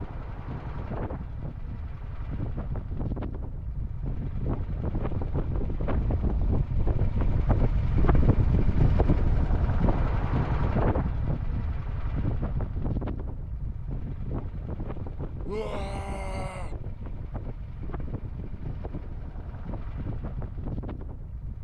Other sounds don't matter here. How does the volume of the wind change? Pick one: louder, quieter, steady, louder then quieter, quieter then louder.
louder then quieter.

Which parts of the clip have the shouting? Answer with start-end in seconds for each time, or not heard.
15.4-16.8.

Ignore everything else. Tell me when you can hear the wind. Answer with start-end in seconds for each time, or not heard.
0.0-21.5.